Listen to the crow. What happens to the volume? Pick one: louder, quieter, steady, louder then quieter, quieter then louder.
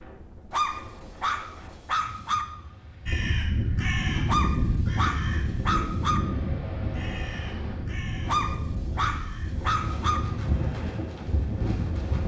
quieter.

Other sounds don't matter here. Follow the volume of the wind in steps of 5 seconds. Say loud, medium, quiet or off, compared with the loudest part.
quiet, medium, loud.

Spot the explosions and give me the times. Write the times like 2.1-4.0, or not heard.
not heard.